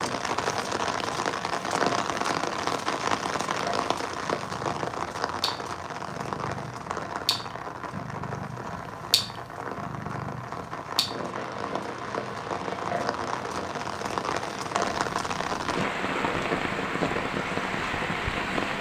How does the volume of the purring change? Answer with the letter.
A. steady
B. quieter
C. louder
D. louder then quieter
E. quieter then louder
A.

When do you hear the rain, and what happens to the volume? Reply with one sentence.
You can hear the rain from 0.0 to 18.7 s, getting quieter then louder.